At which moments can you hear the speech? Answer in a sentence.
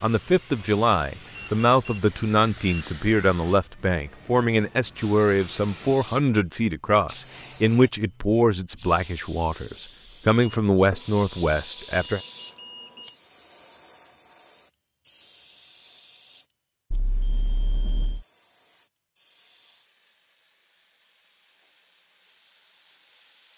You can hear the speech from 0.0 to 12.2 s.